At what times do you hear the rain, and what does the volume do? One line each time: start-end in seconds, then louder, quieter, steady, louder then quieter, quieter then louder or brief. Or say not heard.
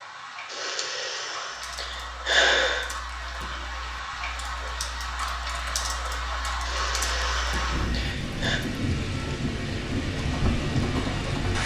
0.0-11.6 louder.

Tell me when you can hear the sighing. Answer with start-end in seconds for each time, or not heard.
0.5-2.9, 6.7-8.6.